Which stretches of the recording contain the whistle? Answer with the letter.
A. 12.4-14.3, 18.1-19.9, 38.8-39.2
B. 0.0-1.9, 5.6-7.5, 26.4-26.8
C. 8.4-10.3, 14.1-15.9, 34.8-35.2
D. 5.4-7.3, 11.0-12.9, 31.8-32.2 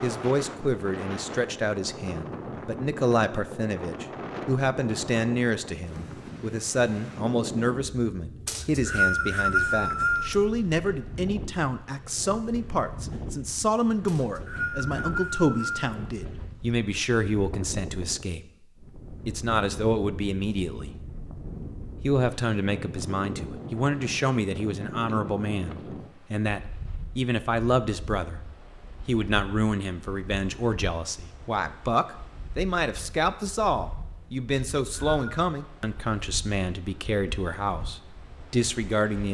C.